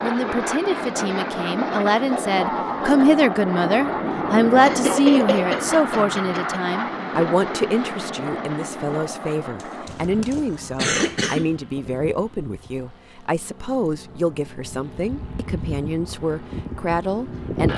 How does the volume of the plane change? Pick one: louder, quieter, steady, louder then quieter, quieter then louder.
quieter then louder.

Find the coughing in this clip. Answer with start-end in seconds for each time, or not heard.
4.6-6.6, 9.6-11.5.